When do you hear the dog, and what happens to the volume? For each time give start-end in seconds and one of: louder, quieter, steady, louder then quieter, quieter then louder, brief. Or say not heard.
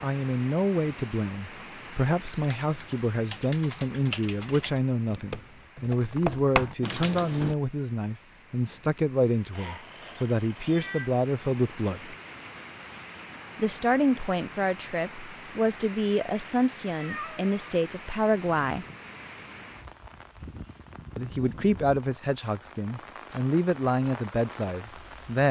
not heard.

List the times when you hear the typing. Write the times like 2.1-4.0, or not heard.
2.4-7.5.